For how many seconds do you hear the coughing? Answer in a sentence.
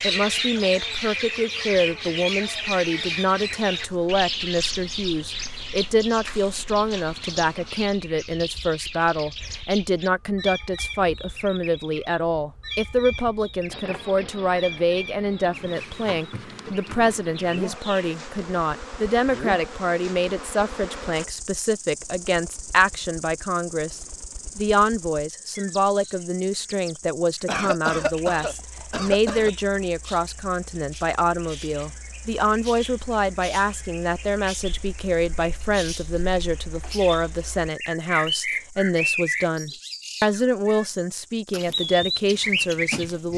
The coughing can be heard for 2 seconds in total.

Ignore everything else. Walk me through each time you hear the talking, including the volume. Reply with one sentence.
The talking can be heard from 0.0 to 43.3 s, at a steady volume.